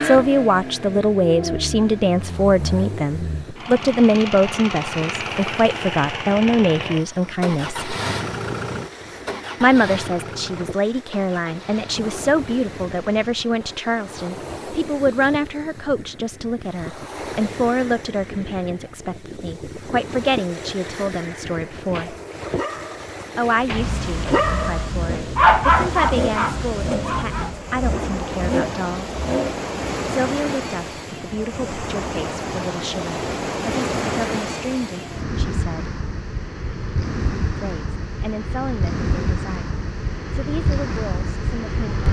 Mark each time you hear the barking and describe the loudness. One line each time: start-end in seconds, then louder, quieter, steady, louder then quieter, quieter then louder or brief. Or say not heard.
21.8-27.6 louder then quieter.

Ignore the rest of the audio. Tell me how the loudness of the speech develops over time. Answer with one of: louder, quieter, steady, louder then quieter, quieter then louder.
quieter.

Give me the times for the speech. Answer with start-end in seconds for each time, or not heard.
0.0-7.9, 9.6-22.1, 23.4-29.1, 30.1-36.0, 37.5-42.0.